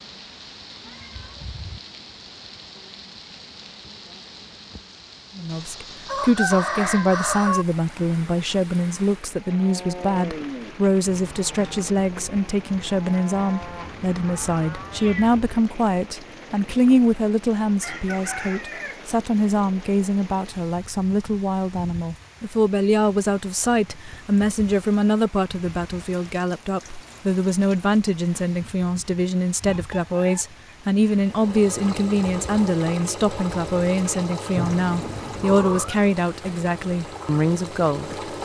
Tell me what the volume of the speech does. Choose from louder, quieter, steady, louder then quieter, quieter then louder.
steady.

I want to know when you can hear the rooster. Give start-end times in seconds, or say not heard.
6.0-7.7, 17.6-19.0, 29.6-30.4.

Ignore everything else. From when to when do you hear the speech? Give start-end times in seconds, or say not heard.
5.3-38.0.